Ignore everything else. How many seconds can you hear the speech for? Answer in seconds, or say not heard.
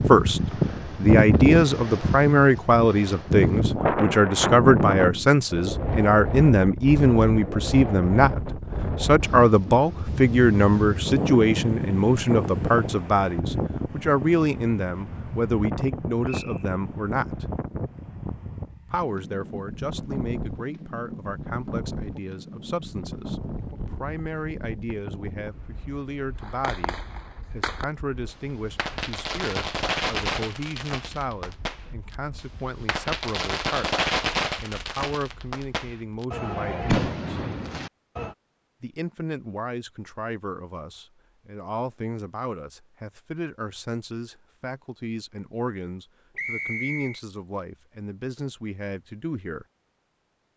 47 s.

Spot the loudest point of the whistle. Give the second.
47 s.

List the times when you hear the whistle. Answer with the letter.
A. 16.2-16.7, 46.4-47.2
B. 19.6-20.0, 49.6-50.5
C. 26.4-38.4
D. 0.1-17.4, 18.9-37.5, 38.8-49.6
A.